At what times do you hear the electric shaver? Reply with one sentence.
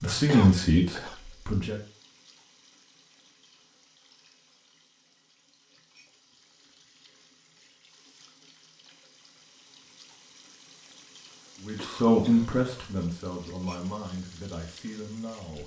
You can't hear the electric shaver here.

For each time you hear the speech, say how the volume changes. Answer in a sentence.
You can hear the speech briefly from 0.0 to 1.8 s; and from 11.6 to 15.6 s, getting quieter.